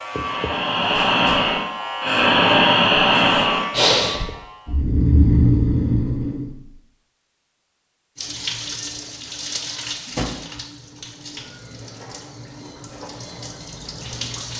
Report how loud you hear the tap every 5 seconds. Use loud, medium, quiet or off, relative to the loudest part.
off, loud, medium.